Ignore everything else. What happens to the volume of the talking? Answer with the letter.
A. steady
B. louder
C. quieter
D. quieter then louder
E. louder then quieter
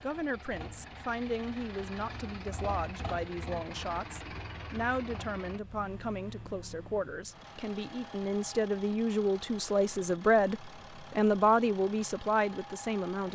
B.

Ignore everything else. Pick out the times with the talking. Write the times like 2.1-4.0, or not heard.
0.0-13.3.